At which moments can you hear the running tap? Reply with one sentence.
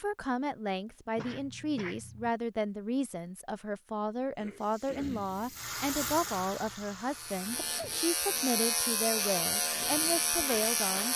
You can hear the running tap from 4.3 to 8.2 s.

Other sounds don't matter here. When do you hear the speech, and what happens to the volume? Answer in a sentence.
You can hear the speech from 0.0 to 11.1 s, at a steady volume.